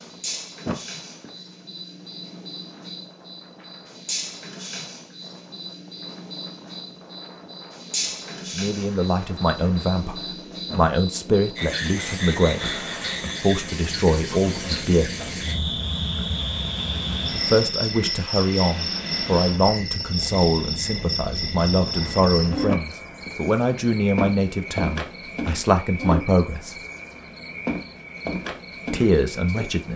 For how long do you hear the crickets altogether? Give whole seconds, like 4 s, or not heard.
30 s.